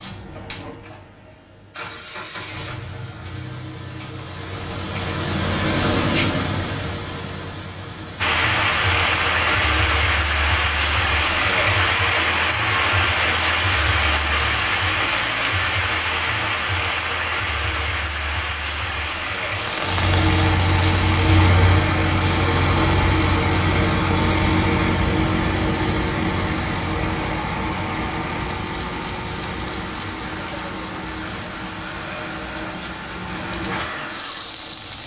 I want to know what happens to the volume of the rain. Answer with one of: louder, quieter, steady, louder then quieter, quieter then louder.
quieter.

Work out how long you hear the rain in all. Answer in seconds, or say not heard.
27 s.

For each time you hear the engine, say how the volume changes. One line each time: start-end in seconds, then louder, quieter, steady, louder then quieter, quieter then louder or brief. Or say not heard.
0.0-9.8 louder then quieter
19.8-35.0 quieter.